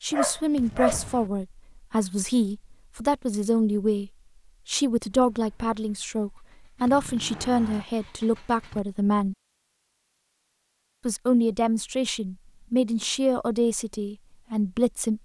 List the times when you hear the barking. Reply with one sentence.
You can hear the barking from 0.1 to 1.2 s.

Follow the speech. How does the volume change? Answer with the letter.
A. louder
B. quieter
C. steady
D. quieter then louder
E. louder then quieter
C.